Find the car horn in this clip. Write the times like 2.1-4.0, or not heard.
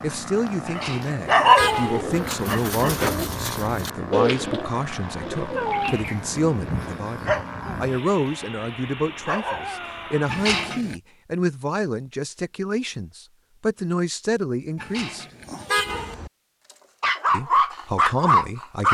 0.7-2.0, 10.2-10.9, 14.8-16.1.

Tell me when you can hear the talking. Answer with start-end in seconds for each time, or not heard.
0.0-15.2, 17.3-18.8.